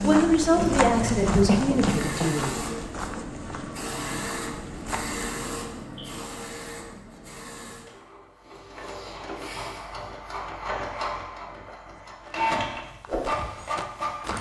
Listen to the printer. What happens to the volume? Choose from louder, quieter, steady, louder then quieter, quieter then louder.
quieter then louder.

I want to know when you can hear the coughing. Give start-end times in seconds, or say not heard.
1.4-2.4.